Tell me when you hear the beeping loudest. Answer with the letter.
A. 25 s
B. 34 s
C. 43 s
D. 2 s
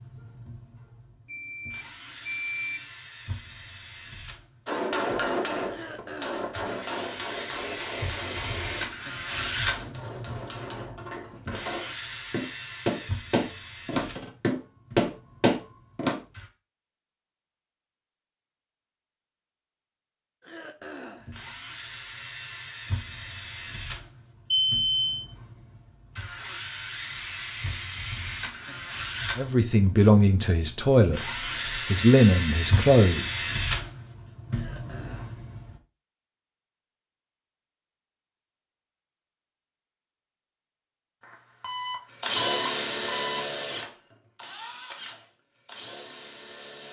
A.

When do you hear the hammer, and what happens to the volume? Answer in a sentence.
The hammer can be heard from 4.7 to 16.2 s, getting quieter then louder.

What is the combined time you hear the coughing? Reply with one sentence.
The coughing can be heard for 3 seconds in total.